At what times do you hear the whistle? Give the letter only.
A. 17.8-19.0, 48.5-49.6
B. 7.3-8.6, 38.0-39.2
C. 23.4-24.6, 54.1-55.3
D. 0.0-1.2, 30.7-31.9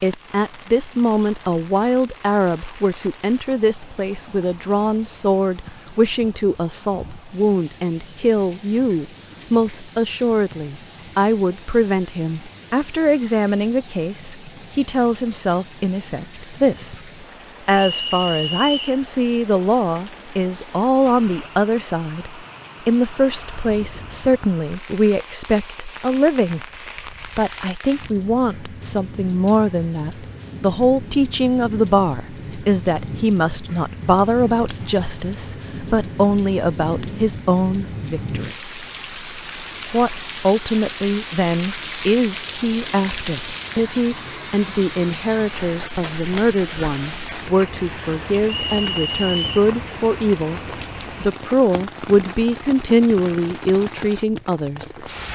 A.